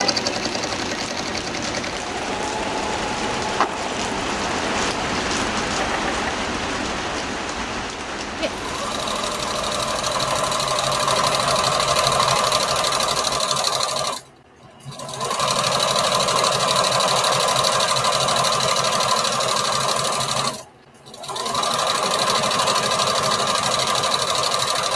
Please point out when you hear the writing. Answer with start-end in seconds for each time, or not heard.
not heard.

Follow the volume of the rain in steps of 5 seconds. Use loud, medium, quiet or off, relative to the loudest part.
loud, loud, medium, off, off.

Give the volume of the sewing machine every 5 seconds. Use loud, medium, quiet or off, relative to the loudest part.
medium, medium, loud, loud, loud.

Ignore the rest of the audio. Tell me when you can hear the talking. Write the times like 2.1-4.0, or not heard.
not heard.